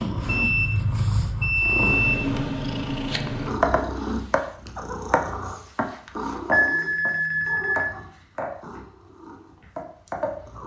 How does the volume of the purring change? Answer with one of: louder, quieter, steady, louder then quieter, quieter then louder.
quieter.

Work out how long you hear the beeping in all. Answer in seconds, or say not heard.
3 s.